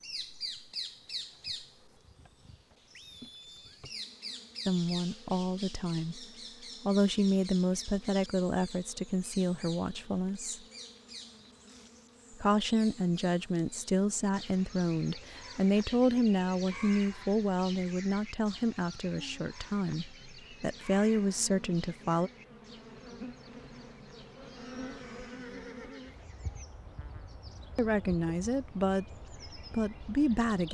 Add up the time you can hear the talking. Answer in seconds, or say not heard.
19 s.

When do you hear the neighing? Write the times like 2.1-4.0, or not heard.
2.9-3.8, 24.4-26.2.